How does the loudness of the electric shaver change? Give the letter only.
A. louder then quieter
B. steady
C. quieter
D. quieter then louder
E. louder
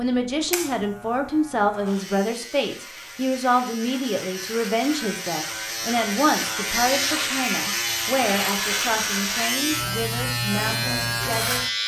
E.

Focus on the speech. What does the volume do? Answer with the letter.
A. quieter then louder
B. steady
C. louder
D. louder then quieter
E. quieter
E.